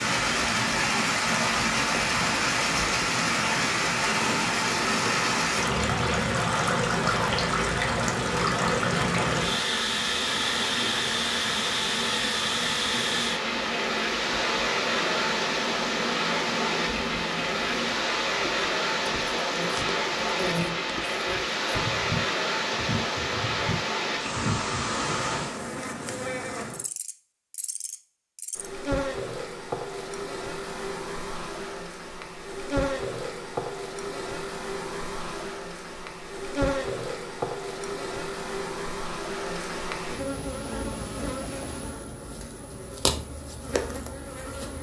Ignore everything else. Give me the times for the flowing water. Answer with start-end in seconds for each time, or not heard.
0.0-25.6.